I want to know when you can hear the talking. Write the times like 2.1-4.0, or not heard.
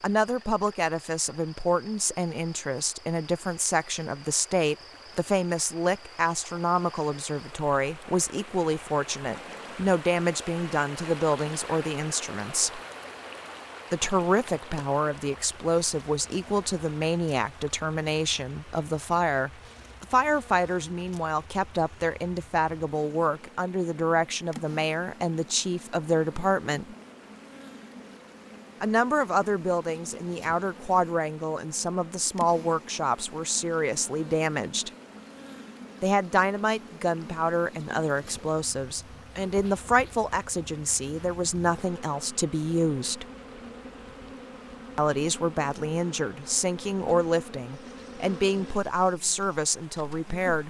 0.0-12.8, 13.9-26.9, 28.8-34.9, 36.0-43.2, 45.0-50.6.